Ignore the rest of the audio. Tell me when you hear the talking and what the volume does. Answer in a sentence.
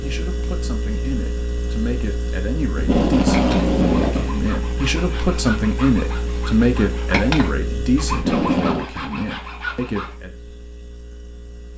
The talking can be heard from 0.0 to 10.3 s, getting louder then quieter.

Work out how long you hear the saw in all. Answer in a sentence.
You can hear the saw for 7 seconds altogether.